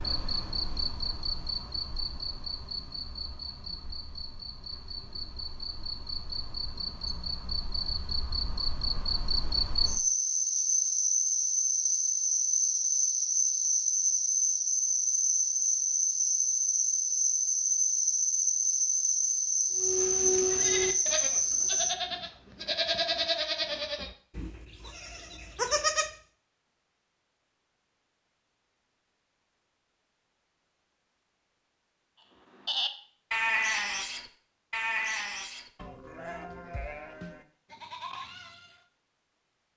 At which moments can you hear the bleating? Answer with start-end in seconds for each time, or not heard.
19.8-26.1, 32.6-38.9.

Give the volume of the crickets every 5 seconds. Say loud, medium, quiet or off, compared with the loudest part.
medium, medium, loud, loud, loud, off, off, off.